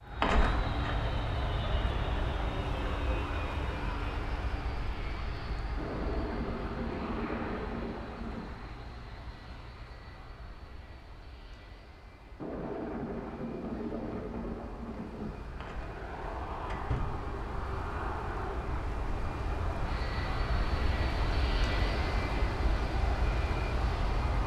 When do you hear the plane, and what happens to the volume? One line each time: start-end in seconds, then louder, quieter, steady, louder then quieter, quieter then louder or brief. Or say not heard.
0.0-24.4 quieter then louder.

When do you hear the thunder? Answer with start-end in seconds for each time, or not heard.
5.8-8.5, 12.4-15.4.